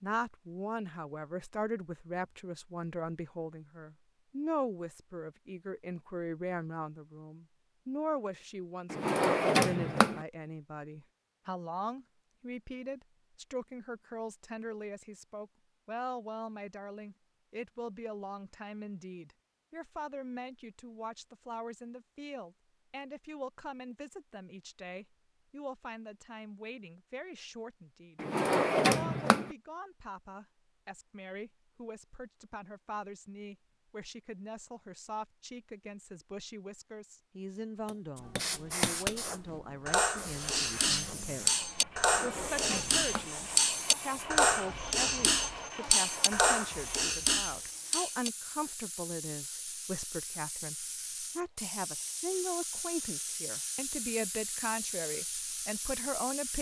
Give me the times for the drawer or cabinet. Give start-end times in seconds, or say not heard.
8.9-10.2, 28.1-29.5, 42.0-43.3.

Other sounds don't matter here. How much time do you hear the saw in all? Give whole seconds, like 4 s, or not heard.
not heard.